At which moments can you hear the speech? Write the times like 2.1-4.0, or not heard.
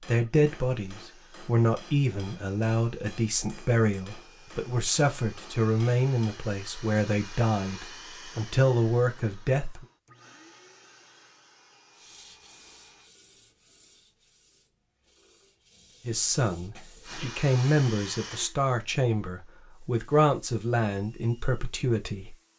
0.1-9.8, 16.1-22.4.